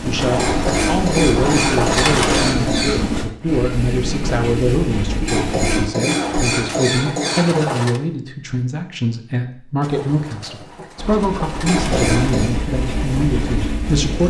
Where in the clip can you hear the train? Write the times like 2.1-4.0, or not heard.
0.0-5.9, 10.9-14.2.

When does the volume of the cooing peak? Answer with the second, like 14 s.
2 s.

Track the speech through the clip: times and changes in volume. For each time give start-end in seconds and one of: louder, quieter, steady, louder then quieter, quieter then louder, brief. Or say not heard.
0.0-14.2 steady.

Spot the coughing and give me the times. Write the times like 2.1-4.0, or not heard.
0.3-3.0, 5.2-7.7, 11.7-12.5.